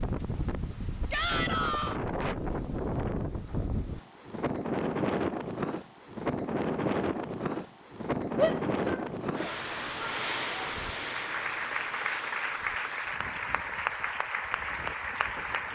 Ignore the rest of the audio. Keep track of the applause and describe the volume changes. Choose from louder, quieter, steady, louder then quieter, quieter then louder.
steady.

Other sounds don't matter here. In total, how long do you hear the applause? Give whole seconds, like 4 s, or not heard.
5 s.